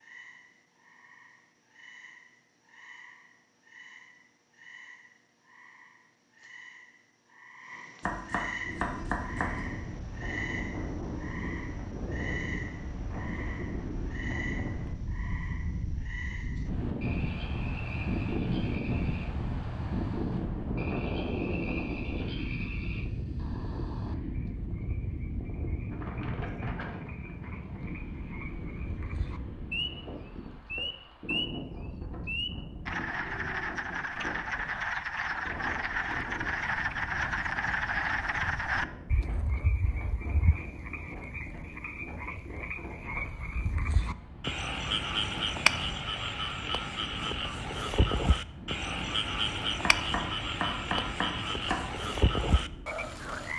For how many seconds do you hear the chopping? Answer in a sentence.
You can hear the chopping for 4 seconds altogether.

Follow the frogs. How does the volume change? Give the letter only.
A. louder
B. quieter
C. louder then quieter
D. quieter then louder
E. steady
A.